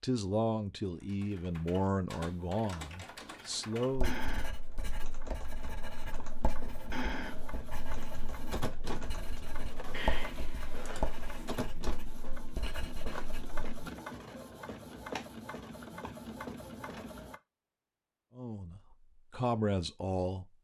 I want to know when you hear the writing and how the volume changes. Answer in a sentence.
You can hear the writing from 3.9 to 13.6 s, getting louder then quieter.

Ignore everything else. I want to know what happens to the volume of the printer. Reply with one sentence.
The volume of the printer goes up.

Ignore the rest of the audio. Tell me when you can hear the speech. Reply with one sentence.
You can hear the speech from 0.0 to 4.2 s and from 18.4 to 20.4 s.